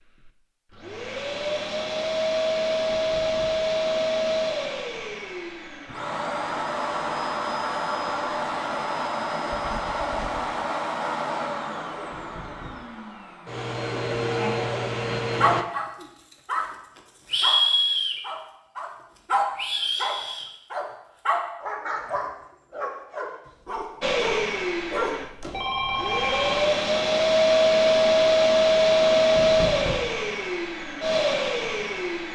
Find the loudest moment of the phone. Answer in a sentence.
The loudest moment of the phone is at 26 seconds.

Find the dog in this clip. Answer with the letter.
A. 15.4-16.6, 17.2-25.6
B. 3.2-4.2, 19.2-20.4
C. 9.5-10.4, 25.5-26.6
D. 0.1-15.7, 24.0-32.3
A.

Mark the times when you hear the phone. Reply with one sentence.
The phone can be heard from 9.5 to 10.4 s and from 25.5 to 26.6 s.